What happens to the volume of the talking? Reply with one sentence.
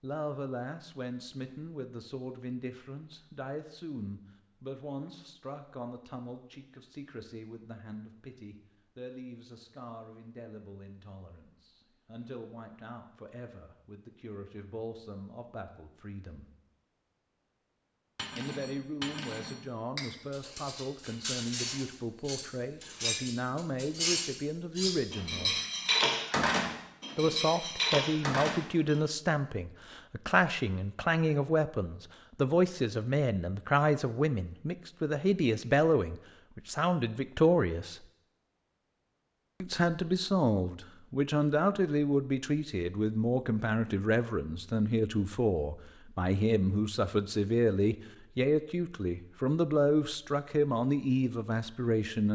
The loudness of the talking goes up.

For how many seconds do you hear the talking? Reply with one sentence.
The talking can be heard for 47 seconds in total.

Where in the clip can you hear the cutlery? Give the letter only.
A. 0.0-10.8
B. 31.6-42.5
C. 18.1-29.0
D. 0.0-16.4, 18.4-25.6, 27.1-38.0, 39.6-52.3
C.